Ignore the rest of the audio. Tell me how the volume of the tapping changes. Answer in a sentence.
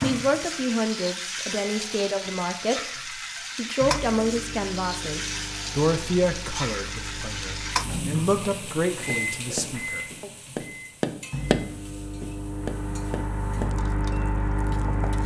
The volume of the tapping goes up, then down.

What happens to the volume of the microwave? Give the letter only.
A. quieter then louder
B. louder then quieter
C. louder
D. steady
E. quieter
C.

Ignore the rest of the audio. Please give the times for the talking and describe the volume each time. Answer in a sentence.
The talking can be heard from 0.0 to 10.3 s, at a steady volume.